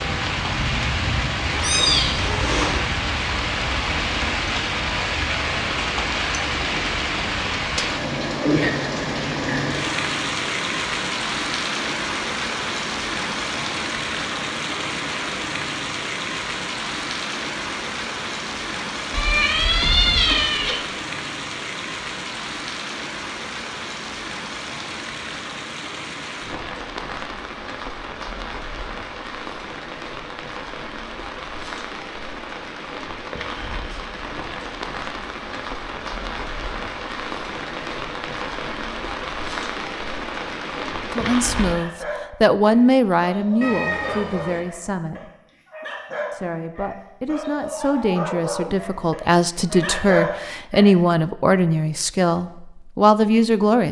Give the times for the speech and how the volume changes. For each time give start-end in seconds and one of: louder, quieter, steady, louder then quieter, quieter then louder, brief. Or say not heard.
41.1-45.3 louder then quieter
46.3-53.8 louder.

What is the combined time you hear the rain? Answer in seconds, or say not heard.
42 s.